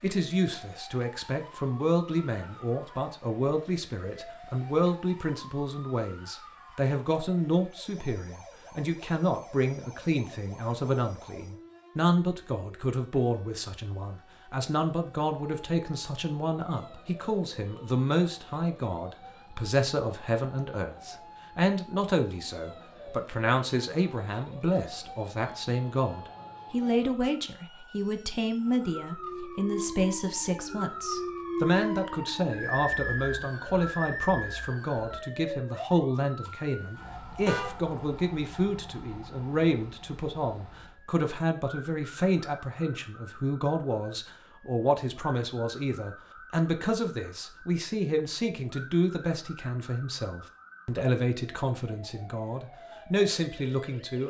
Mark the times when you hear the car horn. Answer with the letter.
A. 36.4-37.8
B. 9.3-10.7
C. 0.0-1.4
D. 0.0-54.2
A.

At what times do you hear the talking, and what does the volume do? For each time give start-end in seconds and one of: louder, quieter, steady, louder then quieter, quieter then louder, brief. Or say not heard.
0.0-54.2 steady.